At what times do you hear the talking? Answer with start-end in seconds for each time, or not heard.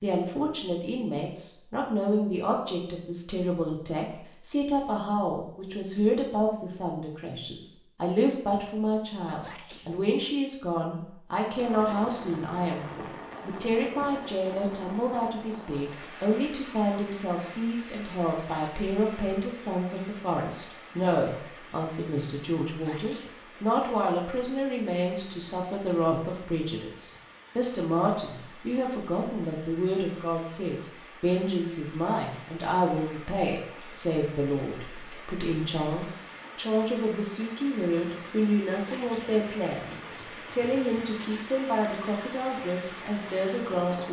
0.0-44.0.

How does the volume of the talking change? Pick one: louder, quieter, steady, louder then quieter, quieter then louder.
steady.